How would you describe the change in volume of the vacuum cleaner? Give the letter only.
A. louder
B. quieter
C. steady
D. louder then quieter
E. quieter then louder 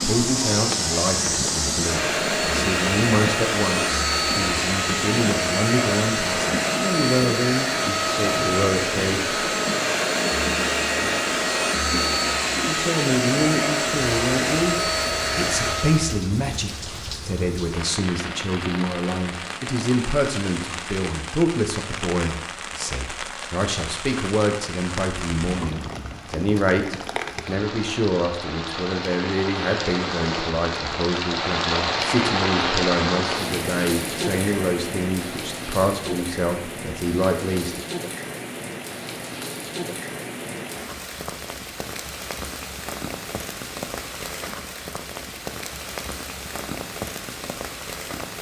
C.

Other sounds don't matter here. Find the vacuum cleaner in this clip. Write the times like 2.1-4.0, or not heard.
0.0-16.2.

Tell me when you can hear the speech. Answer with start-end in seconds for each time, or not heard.
0.0-9.2, 12.7-37.9.